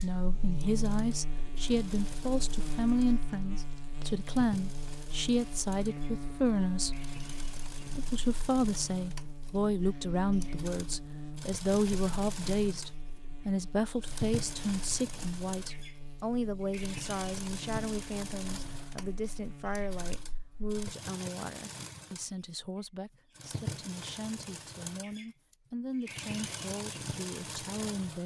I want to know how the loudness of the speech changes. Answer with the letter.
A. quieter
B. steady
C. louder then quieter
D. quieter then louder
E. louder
A.